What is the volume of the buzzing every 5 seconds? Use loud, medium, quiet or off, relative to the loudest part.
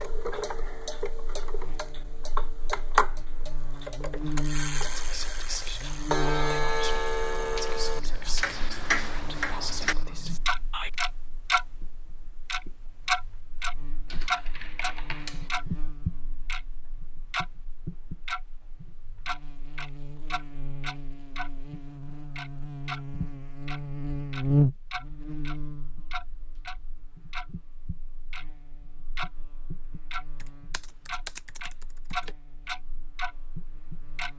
medium, medium, quiet, quiet, loud, quiet, quiet.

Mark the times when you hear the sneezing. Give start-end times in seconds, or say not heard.
not heard.